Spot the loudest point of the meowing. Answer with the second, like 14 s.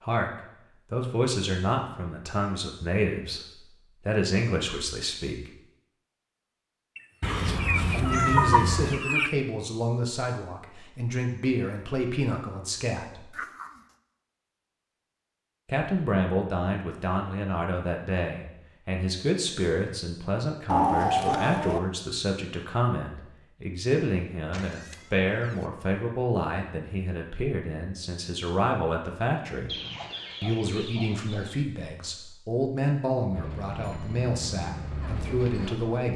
8 s.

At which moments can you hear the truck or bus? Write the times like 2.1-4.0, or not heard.
33.3-36.1.